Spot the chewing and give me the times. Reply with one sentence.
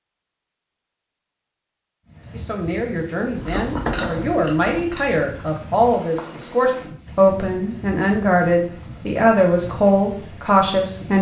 You can hear the chewing from 3.4 to 6.5 s.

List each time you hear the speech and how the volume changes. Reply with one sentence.
You can hear the speech from 2.3 to 11.1 s, getting louder.